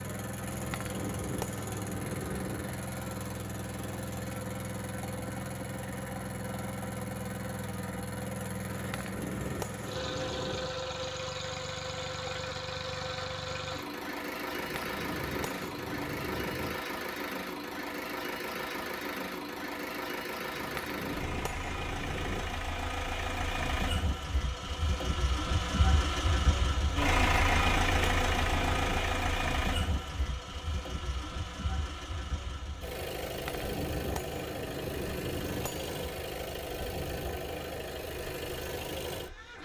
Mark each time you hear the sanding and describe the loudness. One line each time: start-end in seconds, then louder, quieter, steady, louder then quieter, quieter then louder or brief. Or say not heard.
not heard.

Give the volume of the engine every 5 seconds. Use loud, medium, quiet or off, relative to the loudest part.
medium, medium, medium, medium, medium, loud, medium, medium.